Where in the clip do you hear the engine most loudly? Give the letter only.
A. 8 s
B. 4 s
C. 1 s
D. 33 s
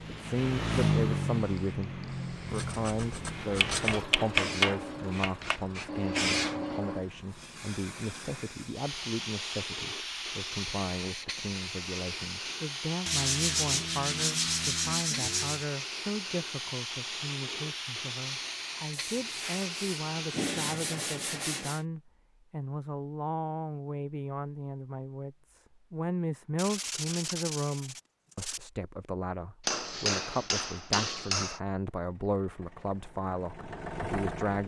C.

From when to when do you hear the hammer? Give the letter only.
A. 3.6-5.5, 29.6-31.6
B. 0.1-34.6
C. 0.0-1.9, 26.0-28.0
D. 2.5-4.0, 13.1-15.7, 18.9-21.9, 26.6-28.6
A.